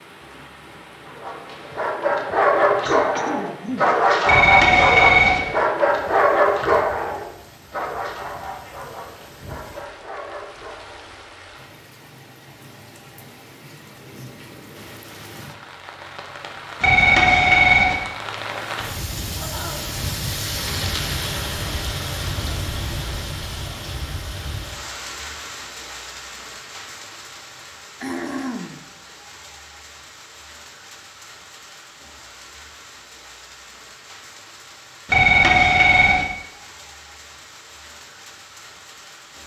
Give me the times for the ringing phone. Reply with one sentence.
You can hear the ringing phone from 4.2 to 5.4 s, from 16.8 to 17.9 s and from 35.0 to 36.2 s.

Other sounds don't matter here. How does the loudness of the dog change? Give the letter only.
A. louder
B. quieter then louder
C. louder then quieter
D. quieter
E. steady
D.